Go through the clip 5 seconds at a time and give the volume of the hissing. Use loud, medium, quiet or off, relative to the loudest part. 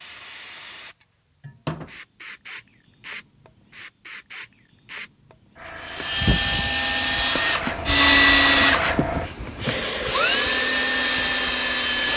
medium, loud, loud.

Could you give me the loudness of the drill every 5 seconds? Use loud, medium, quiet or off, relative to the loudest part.
off, loud, loud.